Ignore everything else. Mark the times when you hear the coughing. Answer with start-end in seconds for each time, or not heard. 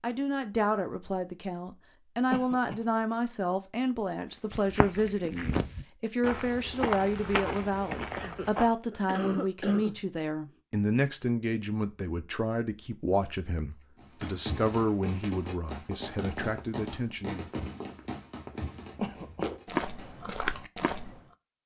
2.3-2.9, 8.2-10.0, 19.0-19.5.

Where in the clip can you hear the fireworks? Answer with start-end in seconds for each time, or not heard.
13.9-20.4.